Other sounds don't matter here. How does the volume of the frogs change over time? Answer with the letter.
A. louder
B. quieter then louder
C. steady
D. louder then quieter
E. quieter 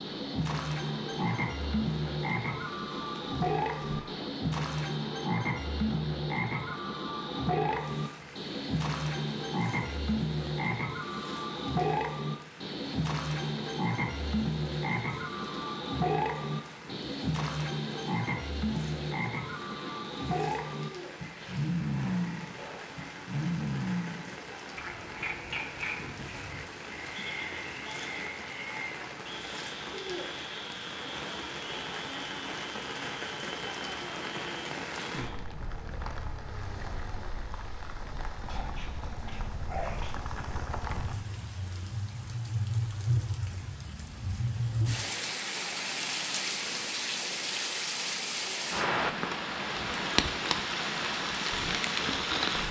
E.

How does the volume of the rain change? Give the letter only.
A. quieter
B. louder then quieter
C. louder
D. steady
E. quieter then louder
C.